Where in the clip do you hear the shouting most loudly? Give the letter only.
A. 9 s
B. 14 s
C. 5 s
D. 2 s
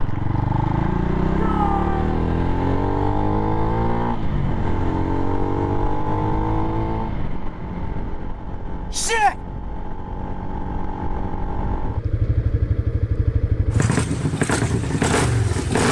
A.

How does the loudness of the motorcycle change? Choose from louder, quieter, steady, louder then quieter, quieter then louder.
quieter then louder.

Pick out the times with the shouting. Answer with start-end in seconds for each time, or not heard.
1.4-2.2, 8.9-9.3.